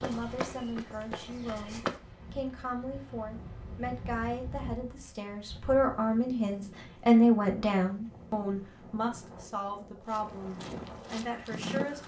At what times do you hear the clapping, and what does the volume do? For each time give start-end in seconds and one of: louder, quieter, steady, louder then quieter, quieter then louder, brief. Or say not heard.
not heard.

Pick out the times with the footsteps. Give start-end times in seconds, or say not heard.
0.0-1.9, 10.0-12.0.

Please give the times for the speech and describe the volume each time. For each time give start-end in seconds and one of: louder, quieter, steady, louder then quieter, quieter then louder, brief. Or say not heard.
0.0-12.0 louder then quieter.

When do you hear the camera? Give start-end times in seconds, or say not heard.
not heard.